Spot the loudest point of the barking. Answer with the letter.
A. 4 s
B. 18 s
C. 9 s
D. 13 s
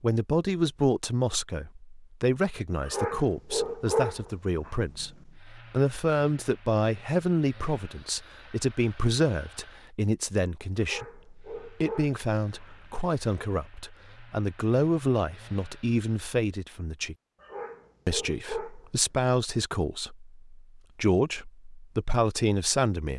A.